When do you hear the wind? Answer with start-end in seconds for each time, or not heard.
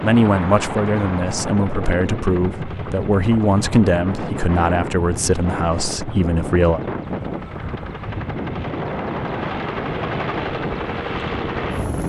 0.0-12.0.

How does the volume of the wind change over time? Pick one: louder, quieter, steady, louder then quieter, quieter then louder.
steady.